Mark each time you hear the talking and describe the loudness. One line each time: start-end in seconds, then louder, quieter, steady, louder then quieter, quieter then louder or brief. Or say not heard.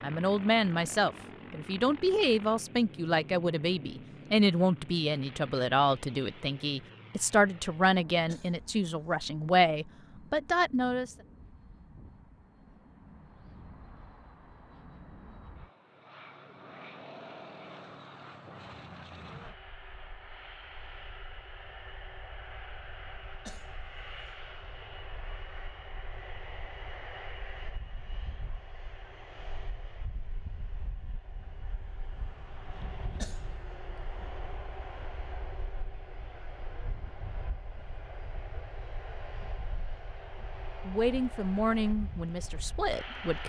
0.0-11.2 steady
40.9-43.4 brief.